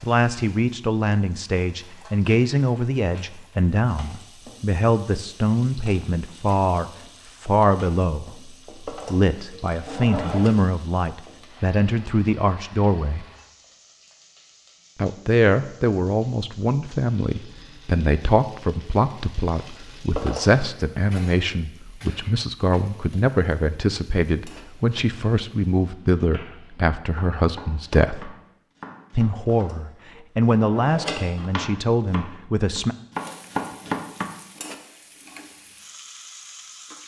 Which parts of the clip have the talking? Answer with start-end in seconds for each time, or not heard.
0.0-13.2, 14.9-28.4, 29.1-33.0.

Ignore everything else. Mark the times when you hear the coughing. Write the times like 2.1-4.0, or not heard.
not heard.